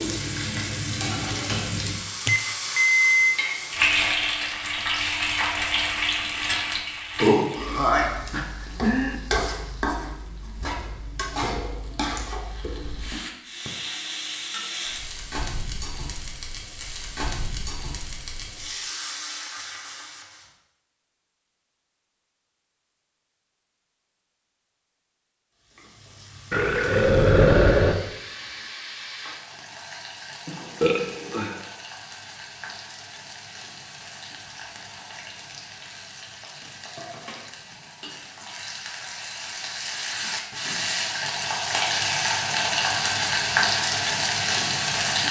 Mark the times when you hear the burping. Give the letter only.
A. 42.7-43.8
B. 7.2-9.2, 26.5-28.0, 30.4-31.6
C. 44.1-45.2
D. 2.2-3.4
B.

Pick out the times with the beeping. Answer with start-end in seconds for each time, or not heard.
2.2-3.4.